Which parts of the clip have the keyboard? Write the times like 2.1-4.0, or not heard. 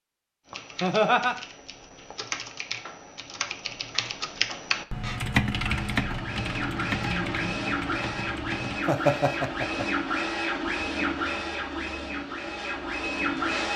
0.5-8.8.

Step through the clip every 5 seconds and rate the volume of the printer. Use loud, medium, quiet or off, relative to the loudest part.
off, loud, loud.